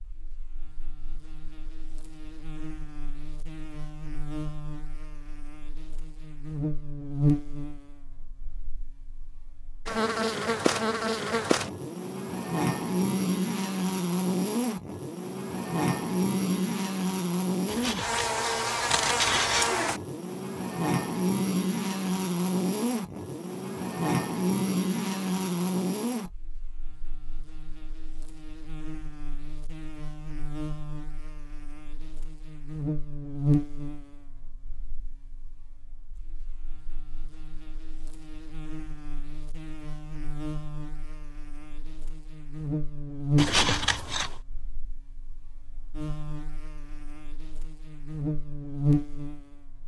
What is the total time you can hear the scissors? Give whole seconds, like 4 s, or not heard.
3 s.